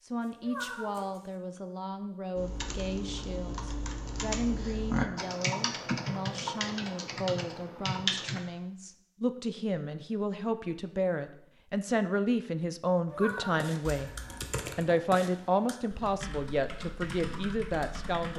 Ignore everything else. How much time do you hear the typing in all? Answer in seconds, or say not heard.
11 s.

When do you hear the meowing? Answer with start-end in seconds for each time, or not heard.
0.4-1.1, 13.1-13.7.